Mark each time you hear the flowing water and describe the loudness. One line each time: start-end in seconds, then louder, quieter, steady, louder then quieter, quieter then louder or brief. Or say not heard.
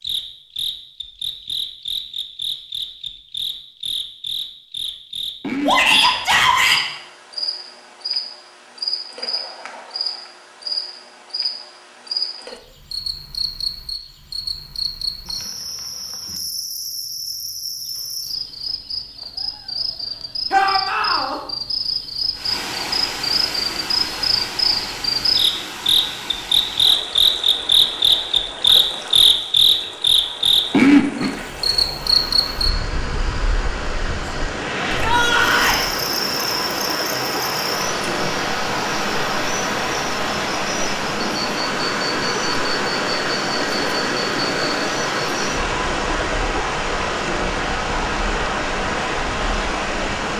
22.3-50.3 louder.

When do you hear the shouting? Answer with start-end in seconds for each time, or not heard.
5.7-6.8, 20.5-21.4, 35.0-35.9.